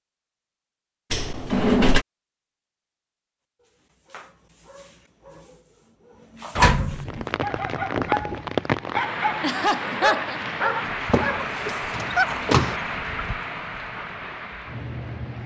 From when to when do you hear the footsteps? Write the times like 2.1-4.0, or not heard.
not heard.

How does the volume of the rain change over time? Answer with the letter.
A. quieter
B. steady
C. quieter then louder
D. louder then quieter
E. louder
A.